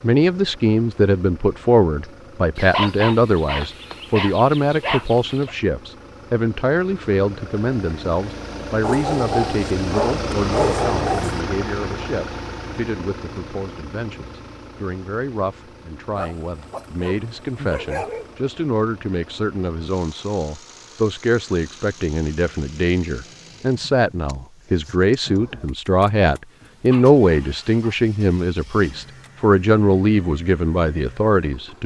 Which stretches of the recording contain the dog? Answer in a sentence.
The dog can be heard from 2.5 to 5.5 s, from 8.8 to 11.4 s, from 16.1 to 18.4 s and from 26.6 to 27.9 s.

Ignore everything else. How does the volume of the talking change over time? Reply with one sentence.
The volume of the talking goes down, then up.